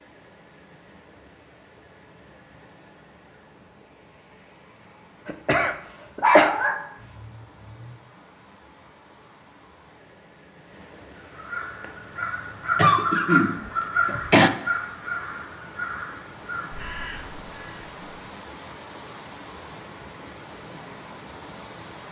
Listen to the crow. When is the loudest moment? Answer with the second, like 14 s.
13 s.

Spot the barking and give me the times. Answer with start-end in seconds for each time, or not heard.
6.2-7.9.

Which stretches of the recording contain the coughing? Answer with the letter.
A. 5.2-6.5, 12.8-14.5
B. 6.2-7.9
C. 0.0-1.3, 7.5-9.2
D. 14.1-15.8
A.